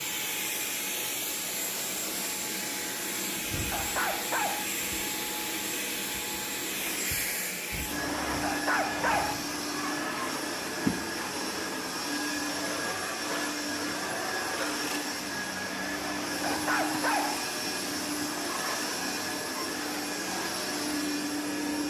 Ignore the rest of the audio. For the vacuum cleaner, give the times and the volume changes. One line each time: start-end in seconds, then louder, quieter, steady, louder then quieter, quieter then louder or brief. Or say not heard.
0.0-21.8 steady.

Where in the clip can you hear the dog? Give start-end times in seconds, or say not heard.
3.7-4.8, 8.4-9.4, 16.4-17.4.